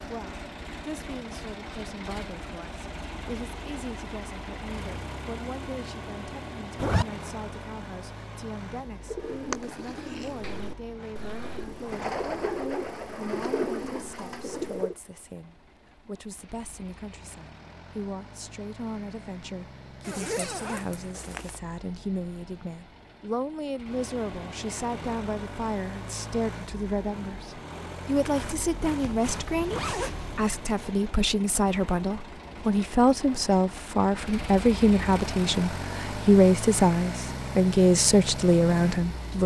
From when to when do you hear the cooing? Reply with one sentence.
You can hear the cooing from 9.0 to 14.9 s.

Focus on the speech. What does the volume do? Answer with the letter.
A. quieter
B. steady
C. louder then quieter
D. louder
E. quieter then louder
D.